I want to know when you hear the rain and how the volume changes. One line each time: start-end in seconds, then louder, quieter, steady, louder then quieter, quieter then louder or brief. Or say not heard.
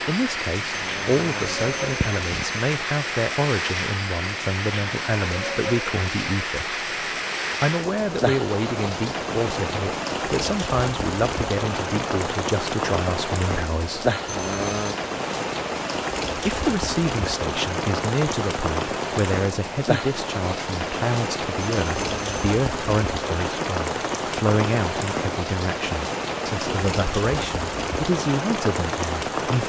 0.0-29.6 steady.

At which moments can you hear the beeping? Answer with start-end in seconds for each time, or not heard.
0.7-2.5, 14.2-14.9, 21.8-22.6.